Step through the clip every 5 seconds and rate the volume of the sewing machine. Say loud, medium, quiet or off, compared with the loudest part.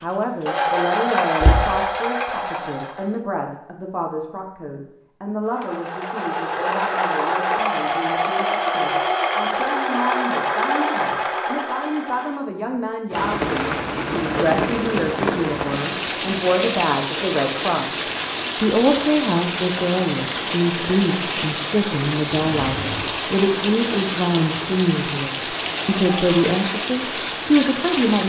loud, loud, loud, off, off, off.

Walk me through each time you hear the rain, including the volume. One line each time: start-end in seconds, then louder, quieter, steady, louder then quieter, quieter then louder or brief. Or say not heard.
13.1-28.2 steady.